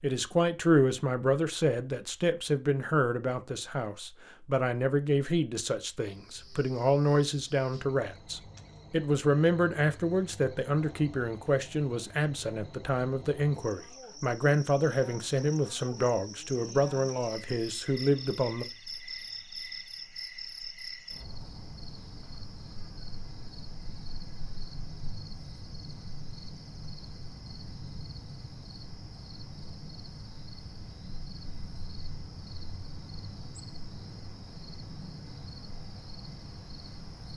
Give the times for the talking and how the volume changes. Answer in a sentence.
You can hear the talking from 0.0 to 18.6 s, at a steady volume.